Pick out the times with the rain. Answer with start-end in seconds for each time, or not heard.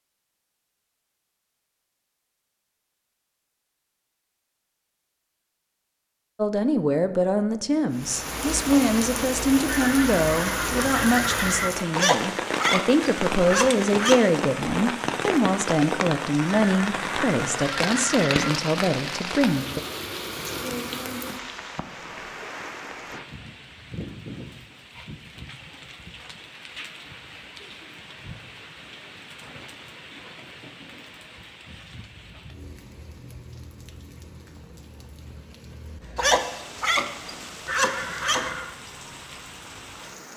7.9-40.3.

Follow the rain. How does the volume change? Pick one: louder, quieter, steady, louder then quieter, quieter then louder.
quieter.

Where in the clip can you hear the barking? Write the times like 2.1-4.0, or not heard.
11.9-14.3, 36.1-38.5.